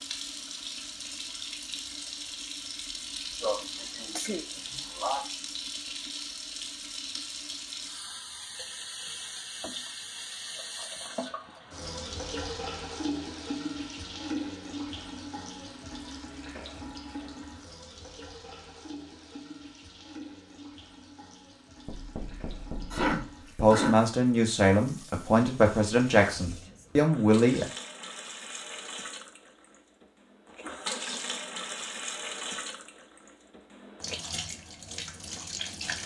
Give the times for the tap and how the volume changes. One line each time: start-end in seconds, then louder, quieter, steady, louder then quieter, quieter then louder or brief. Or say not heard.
0.0-36.0 quieter then louder.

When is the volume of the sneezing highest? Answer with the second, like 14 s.
23 s.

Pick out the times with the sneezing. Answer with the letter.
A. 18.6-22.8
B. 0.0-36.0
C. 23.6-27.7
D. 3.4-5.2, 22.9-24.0
D.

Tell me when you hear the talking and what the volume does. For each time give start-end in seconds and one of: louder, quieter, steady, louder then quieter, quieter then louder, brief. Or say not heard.
23.6-27.7 steady.